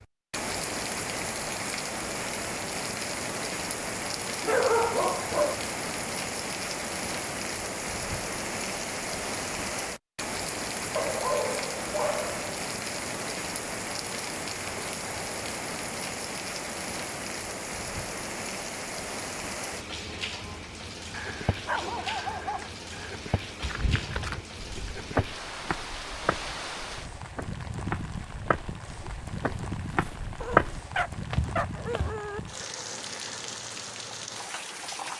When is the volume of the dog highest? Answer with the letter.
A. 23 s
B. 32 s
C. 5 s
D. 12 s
C.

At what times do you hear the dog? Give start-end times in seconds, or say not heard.
4.4-5.5, 10.9-12.4, 21.1-23.1, 30.4-32.4.